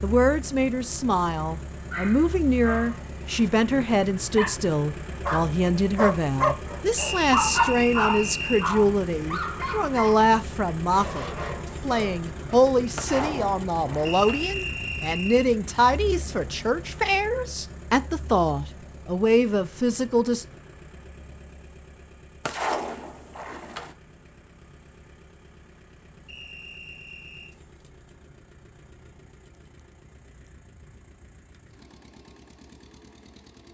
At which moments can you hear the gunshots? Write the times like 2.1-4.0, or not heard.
12.9-14.4, 22.4-23.9.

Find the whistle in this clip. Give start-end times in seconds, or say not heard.
7.0-8.7, 14.1-15.4, 26.2-27.6.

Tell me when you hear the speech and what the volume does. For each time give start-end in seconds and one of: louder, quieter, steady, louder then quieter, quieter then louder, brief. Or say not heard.
0.0-20.4 steady.